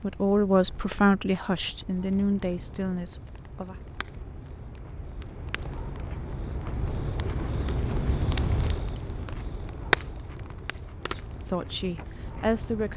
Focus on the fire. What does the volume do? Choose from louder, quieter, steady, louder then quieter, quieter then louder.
louder then quieter.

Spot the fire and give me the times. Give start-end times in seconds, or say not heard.
0.0-12.9.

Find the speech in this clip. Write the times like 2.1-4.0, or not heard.
0.0-3.8, 11.2-12.9.